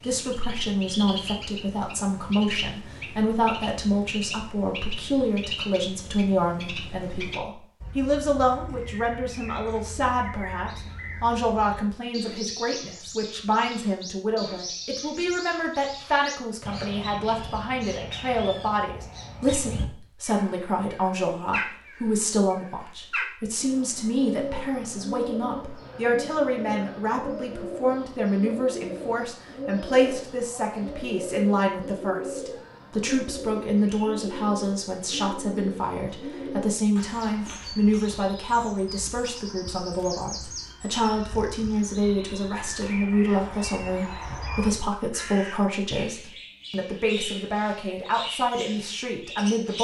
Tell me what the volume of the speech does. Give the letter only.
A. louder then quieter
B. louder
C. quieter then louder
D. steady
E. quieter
D.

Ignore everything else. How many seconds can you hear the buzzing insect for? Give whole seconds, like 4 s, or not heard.
not heard.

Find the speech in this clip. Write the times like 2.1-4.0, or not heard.
0.0-49.8.